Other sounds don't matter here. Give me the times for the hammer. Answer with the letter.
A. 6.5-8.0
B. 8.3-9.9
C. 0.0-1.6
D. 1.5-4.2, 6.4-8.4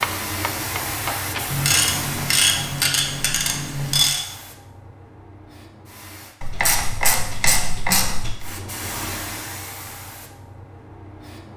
C.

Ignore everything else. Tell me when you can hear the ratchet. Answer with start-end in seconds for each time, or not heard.
1.5-4.2, 6.4-8.4.